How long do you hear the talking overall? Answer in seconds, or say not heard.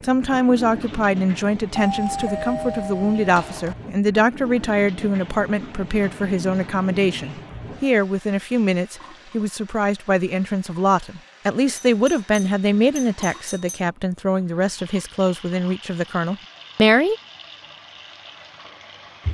17 s.